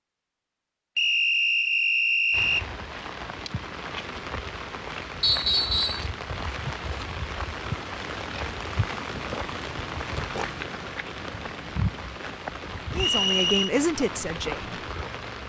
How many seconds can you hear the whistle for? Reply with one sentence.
The whistle can be heard for 3 seconds in total.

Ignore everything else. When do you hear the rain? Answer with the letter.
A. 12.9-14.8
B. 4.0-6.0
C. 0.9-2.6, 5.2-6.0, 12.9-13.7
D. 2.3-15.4
D.